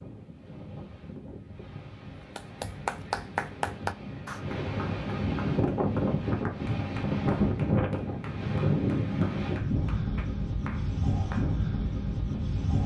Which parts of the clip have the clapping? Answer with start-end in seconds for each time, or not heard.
2.4-11.6.